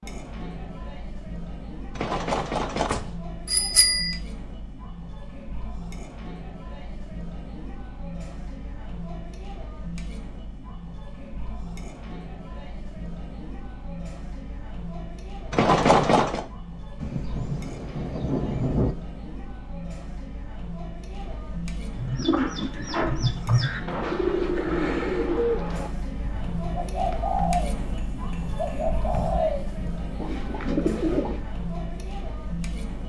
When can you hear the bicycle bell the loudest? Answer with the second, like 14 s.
16 s.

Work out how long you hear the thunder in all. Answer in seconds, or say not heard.
2 s.